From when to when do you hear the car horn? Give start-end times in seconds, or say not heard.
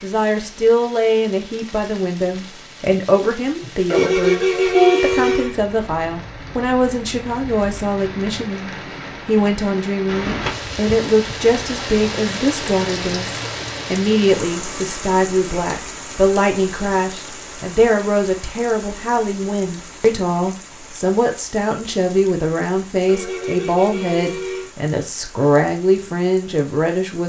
3.9-5.5, 23.1-24.7.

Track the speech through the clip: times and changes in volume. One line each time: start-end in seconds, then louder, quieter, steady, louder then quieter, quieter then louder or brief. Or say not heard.
0.0-27.2 steady.